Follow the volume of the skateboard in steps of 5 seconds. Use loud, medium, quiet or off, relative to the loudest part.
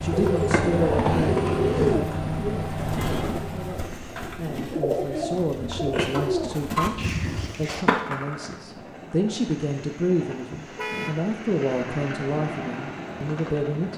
loud, medium, off.